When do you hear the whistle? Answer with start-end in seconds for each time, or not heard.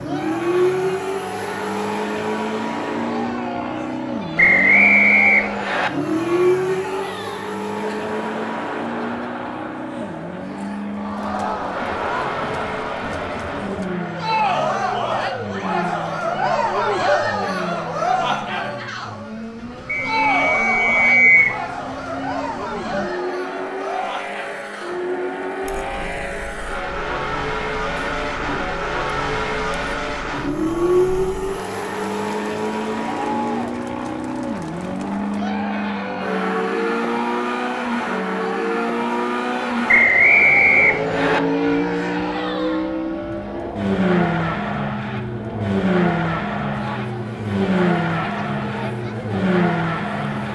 4.3-5.9, 19.9-21.6, 39.9-41.4.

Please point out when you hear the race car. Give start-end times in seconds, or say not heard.
0.0-50.5.